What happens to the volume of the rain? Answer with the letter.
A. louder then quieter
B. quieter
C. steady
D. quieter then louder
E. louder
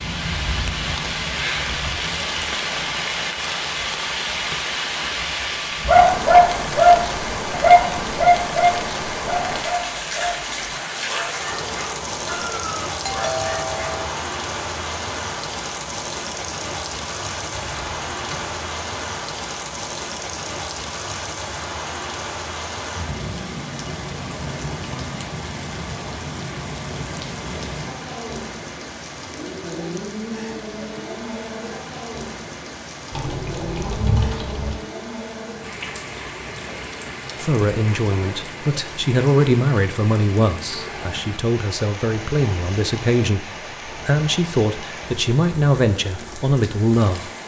B.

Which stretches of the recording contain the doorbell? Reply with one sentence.
The doorbell can be heard from 13.0 to 14.1 s.